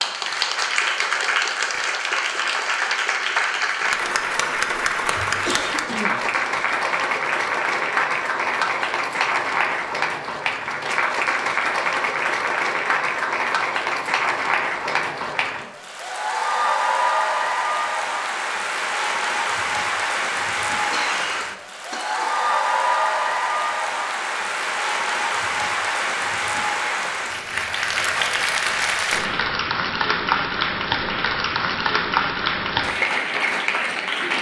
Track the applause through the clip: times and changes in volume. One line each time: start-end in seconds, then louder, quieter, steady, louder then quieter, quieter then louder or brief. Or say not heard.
0.0-34.3 steady.